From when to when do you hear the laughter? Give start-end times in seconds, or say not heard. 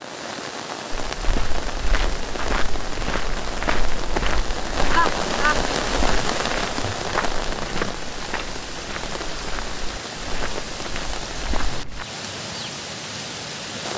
4.9-5.6.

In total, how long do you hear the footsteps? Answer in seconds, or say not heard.
11 s.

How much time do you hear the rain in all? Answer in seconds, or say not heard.
14 s.